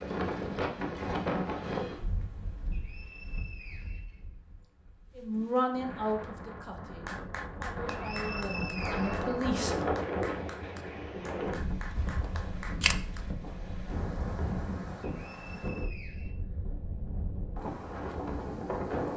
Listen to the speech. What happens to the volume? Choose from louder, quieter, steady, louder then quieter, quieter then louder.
quieter then louder.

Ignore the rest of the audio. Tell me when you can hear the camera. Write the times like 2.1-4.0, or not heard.
11.9-12.9.